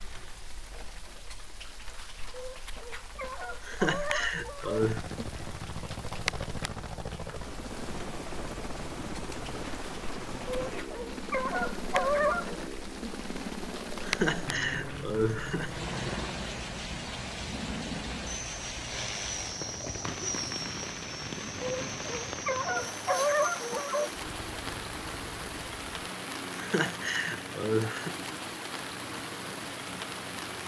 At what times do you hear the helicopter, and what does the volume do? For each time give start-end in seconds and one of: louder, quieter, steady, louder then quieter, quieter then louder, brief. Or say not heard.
4.8-30.6 quieter.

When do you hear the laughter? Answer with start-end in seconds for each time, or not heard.
3.6-5.0, 14.0-15.8, 26.6-28.1.